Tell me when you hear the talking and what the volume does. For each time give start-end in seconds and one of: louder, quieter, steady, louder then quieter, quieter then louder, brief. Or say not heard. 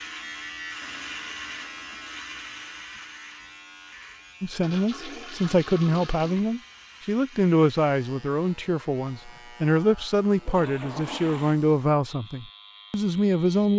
4.4-13.7 steady.